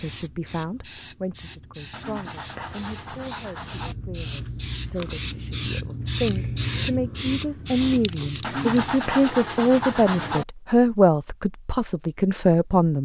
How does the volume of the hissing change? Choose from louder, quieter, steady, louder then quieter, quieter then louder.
louder.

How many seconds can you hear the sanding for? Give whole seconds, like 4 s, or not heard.
4 s.